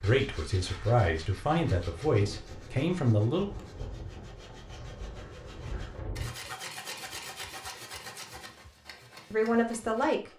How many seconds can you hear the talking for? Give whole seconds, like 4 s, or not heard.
4 s.